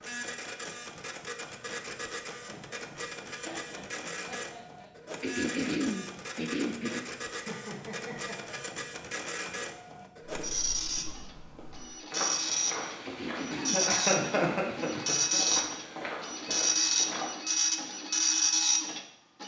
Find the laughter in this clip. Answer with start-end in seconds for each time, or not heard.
2.4-4.9, 7.3-8.8, 13.5-15.4.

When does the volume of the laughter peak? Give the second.
14 s.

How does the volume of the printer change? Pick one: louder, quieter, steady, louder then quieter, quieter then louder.
louder.